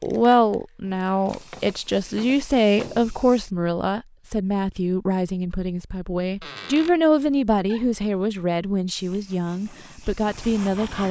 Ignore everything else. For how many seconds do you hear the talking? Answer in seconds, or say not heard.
11 s.